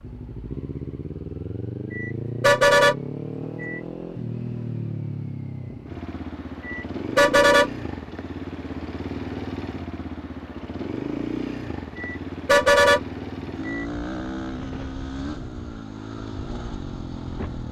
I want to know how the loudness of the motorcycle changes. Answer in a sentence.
The volume of the motorcycle stays about the same.